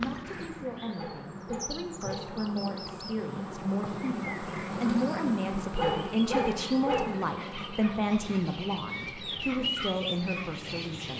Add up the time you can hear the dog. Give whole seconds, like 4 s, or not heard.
3 s.